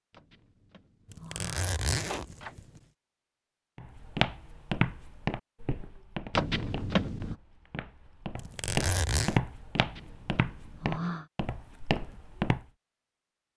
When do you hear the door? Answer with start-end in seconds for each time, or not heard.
0.1-2.5, 6.3-7.3, 9.8-11.3.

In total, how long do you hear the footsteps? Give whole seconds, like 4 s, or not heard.
9 s.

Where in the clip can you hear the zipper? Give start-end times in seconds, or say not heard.
1.1-2.8, 8.3-9.4.